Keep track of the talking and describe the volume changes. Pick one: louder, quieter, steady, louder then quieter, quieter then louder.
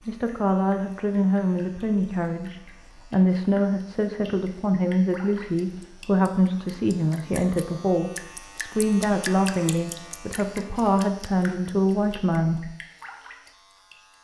steady.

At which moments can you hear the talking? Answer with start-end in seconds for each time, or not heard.
0.1-12.7.